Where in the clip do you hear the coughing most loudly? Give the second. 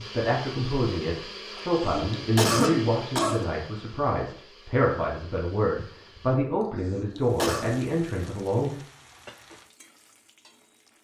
3 s.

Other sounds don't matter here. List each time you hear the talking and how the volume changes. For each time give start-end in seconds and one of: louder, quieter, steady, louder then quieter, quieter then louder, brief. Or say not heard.
0.0-8.8 steady.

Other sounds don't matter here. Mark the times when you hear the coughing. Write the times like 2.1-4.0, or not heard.
1.6-3.5, 6.6-7.7.